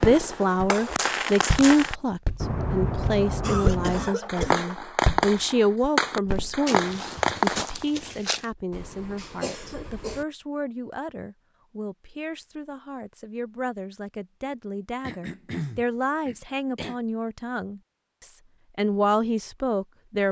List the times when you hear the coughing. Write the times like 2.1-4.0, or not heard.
3.4-4.8, 8.7-10.2, 15.0-16.9.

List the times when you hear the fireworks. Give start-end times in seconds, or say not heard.
0.0-7.7.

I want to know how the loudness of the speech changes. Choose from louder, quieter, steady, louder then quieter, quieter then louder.
quieter then louder.